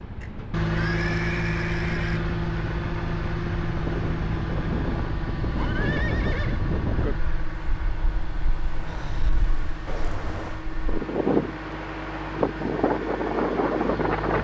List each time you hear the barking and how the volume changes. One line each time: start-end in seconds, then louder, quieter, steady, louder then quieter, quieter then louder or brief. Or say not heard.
not heard.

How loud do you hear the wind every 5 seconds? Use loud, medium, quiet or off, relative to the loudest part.
medium, medium, loud.